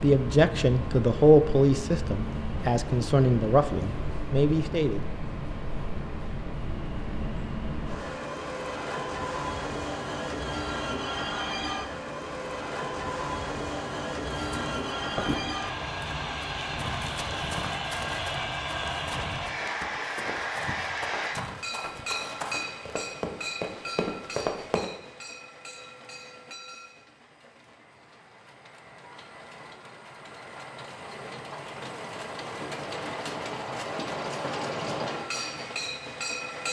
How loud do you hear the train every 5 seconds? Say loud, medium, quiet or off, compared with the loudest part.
loud, loud, loud, loud, loud, quiet, loud, loud.